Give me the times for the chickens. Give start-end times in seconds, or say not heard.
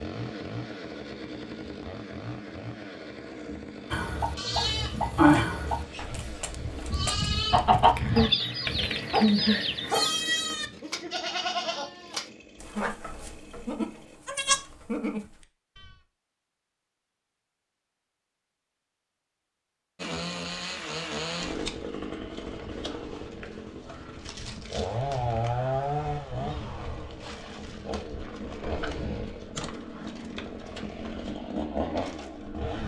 3.9-10.1.